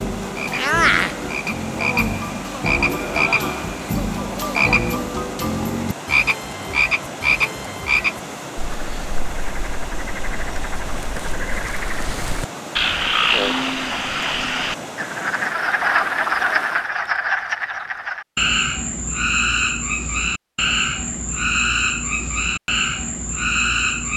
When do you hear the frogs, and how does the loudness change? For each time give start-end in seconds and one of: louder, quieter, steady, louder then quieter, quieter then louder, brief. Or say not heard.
0.0-24.1 steady.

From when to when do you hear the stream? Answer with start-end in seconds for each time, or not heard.
0.0-16.9.